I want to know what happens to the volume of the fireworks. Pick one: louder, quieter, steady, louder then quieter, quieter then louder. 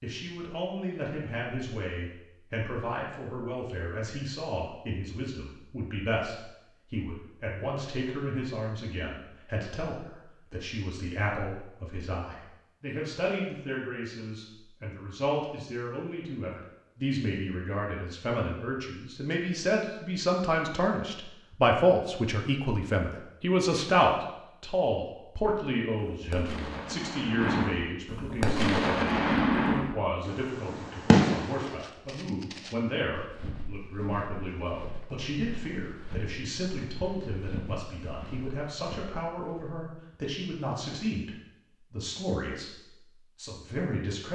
louder.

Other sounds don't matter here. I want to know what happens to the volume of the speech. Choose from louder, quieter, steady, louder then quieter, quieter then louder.
louder then quieter.